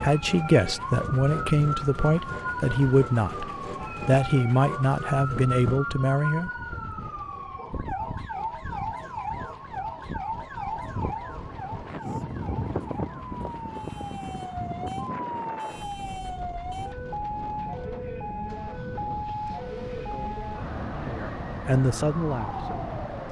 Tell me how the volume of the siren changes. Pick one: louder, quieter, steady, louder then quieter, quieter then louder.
steady.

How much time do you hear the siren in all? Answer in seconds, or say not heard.
23 s.